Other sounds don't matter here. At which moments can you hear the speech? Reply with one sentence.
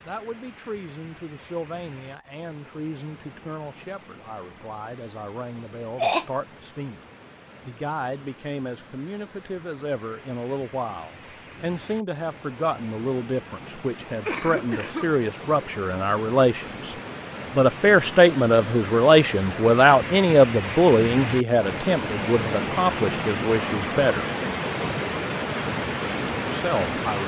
You can hear the speech from 0.1 to 7.0 s, from 7.7 to 16.9 s, from 17.6 to 24.3 s and from 26.5 to 27.2 s.